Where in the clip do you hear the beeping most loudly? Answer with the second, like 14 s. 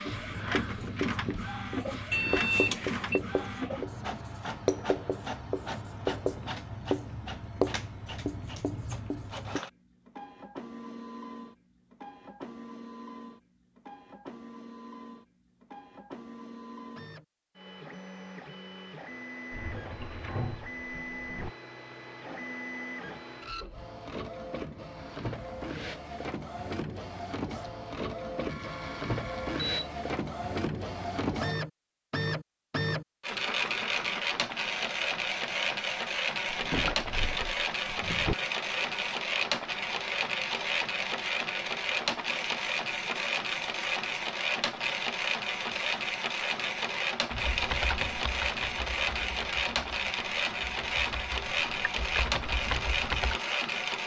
3 s.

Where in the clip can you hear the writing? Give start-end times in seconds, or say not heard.
0.1-9.6.